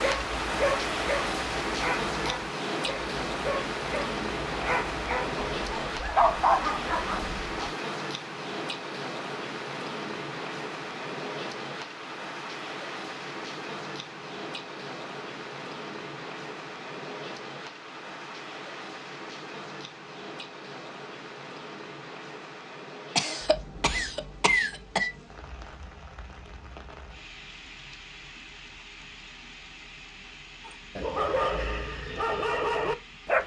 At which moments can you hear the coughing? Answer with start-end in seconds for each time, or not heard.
23.1-25.1.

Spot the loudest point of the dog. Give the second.
6 s.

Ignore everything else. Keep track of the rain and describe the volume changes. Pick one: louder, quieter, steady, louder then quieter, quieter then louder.
quieter.